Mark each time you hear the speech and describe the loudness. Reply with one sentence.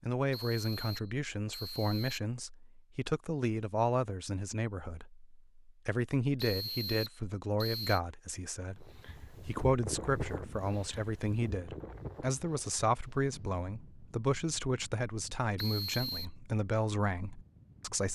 The speech can be heard from 0.0 to 18.1 s, at a steady volume.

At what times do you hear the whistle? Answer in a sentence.
You can hear the whistle from 0.3 to 2.2 s, from 6.3 to 8.0 s and from 15.6 to 16.3 s.